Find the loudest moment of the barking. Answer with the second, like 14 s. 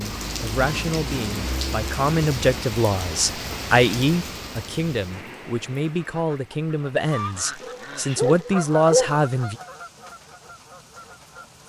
9 s.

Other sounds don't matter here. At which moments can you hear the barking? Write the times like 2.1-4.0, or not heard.
7.6-9.2.